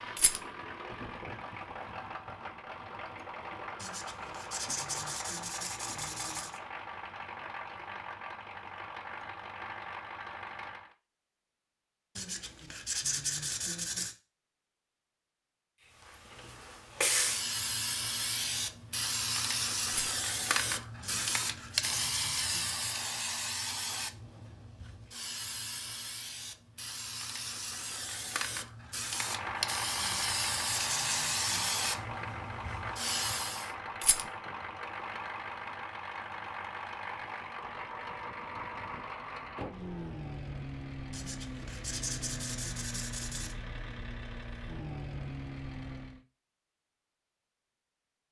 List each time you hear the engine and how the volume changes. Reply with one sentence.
You can hear the engine from 0.0 to 10.9 s, at a steady volume; and from 29.1 to 46.2 s, at a steady volume.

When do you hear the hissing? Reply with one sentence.
The hissing can be heard from 16.1 to 33.7 s.